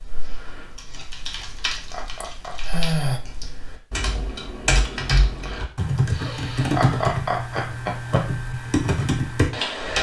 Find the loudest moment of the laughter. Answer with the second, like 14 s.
7 s.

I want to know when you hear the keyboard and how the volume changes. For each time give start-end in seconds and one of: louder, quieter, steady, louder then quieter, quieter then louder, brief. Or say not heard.
0.0-9.9 louder.